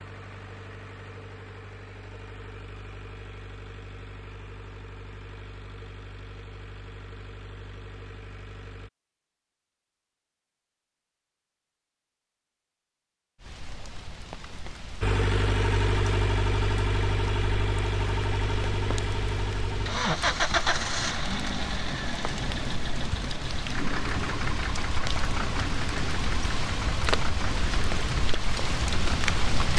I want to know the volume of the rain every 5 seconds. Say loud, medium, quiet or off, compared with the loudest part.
off, off, quiet, medium, medium, loud.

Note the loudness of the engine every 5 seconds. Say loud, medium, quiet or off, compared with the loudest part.
quiet, quiet, off, loud, loud, medium.